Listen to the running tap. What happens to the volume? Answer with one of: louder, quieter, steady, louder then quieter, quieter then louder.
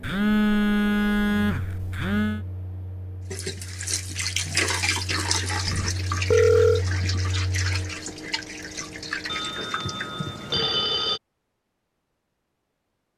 quieter.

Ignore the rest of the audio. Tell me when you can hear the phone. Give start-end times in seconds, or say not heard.
0.0-2.4, 5.7-6.8, 9.2-11.2.